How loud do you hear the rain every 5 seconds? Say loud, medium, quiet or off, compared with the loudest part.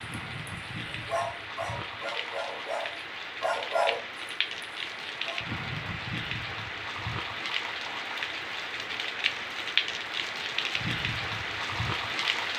medium, loud, loud.